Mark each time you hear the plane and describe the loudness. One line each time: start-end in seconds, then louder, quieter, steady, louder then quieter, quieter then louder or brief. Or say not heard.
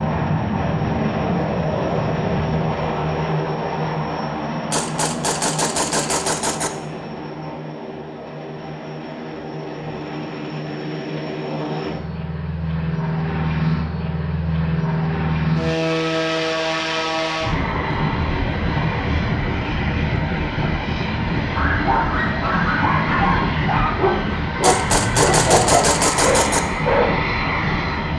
0.0-28.1 quieter then louder.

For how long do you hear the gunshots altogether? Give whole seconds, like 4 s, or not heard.
4 s.